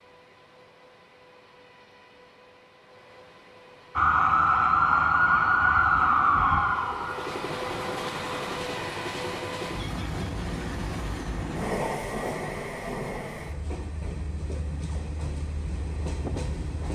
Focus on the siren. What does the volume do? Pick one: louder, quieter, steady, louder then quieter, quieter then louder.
quieter.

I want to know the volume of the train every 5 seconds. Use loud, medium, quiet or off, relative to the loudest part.
quiet, loud, loud, loud.